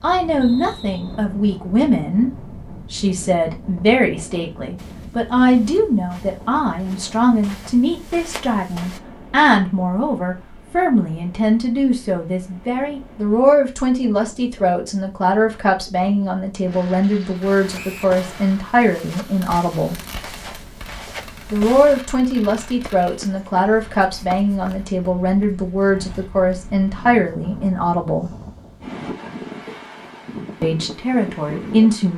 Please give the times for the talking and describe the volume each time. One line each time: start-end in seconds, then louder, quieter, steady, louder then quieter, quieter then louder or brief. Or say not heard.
0.0-19.9 steady
21.5-28.3 steady
30.6-32.1 brief.